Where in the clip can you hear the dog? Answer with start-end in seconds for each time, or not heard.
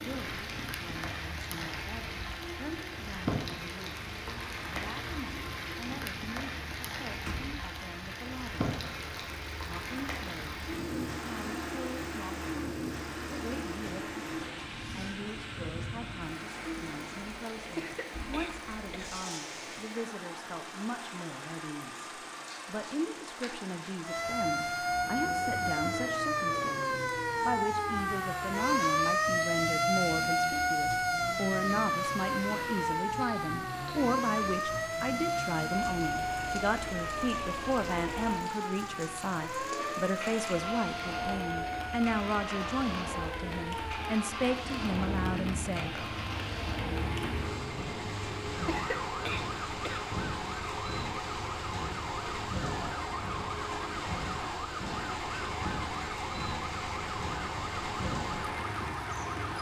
not heard.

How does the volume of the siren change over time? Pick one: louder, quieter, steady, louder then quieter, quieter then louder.
quieter.